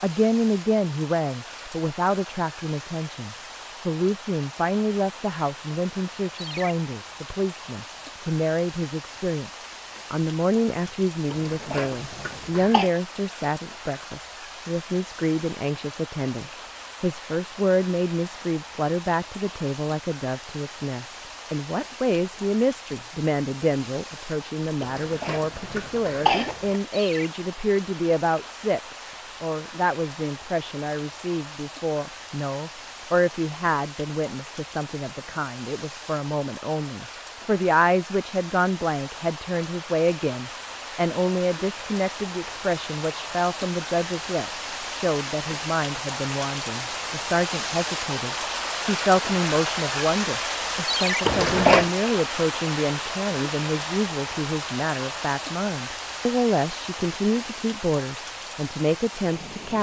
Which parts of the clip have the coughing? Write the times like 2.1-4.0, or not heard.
11.3-12.9, 24.8-26.8, 51.2-51.9.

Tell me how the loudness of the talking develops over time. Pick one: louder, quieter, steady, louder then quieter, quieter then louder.
steady.